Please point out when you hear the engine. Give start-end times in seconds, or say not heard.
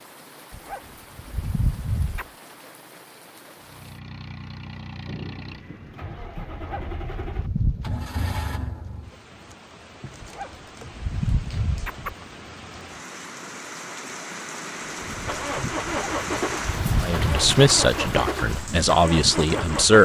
3.6-9.1, 14.8-19.9.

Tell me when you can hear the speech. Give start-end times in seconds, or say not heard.
17.0-19.9.